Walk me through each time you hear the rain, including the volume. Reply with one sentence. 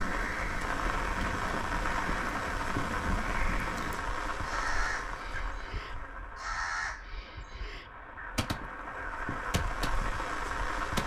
The rain can be heard from 0.0 to 11.0 s, getting quieter then louder.